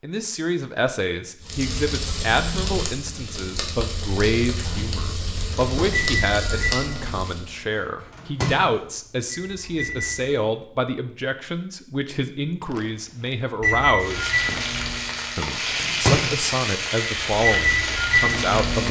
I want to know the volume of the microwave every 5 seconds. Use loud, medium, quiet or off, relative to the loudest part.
off, medium, loud, loud.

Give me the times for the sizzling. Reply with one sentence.
The sizzling can be heard from 1.4 to 7.5 s and from 14.0 to 18.8 s.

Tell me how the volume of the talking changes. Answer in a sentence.
The loudness of the talking stays about the same.